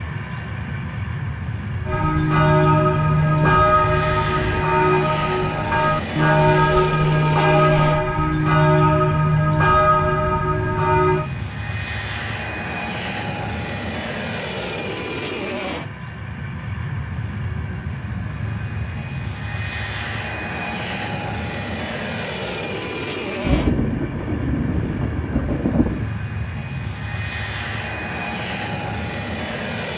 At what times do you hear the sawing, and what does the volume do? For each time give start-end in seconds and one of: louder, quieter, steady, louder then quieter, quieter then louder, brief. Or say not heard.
not heard.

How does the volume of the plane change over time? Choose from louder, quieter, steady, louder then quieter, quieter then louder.
steady.